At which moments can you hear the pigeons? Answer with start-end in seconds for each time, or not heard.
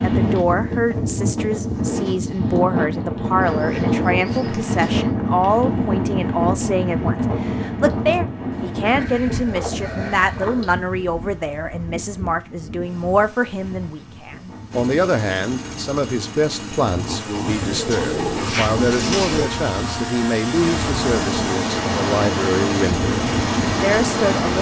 3.4-5.1, 8.5-10.8, 17.4-19.5.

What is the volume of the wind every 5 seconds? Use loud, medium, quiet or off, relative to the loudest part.
loud, loud, quiet, medium, loud.